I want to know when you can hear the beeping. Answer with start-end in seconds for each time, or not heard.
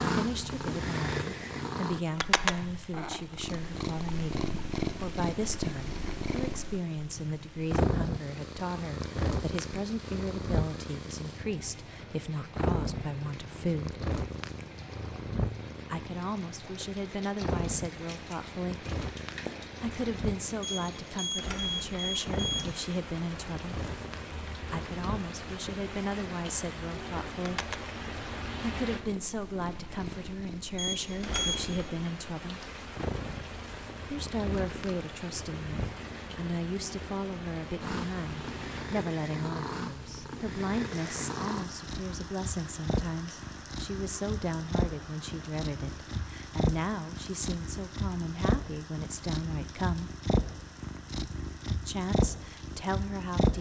20.6-22.6, 30.8-31.6.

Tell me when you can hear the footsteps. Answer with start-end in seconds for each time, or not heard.
not heard.